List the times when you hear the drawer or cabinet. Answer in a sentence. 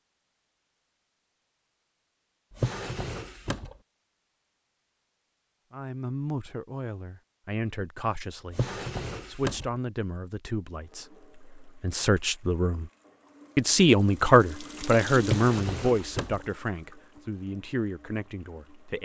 The drawer or cabinet can be heard from 2.5 to 3.8 s, from 8.5 to 9.7 s and from 15.2 to 16.4 s.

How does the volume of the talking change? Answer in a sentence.
The volume of the talking goes up, then down.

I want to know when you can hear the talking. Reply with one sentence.
You can hear the talking from 5.7 to 12.9 s and from 13.6 to 19.0 s.